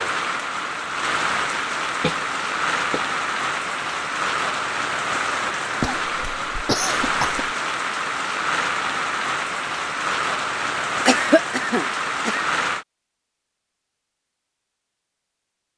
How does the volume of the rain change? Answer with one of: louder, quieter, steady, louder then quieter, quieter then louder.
steady.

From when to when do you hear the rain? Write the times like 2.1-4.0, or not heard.
0.0-12.8.